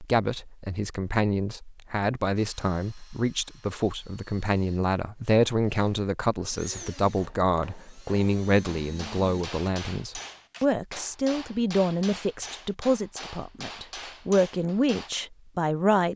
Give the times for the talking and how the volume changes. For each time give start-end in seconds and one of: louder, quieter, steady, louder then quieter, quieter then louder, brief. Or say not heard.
0.0-16.1 steady.